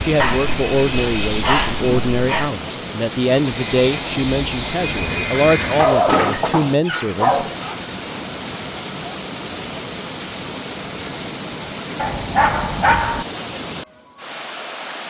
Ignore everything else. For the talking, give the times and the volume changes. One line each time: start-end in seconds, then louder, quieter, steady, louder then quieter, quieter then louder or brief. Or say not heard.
0.0-7.5 steady.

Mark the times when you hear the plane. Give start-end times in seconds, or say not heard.
0.0-2.0, 3.2-6.0.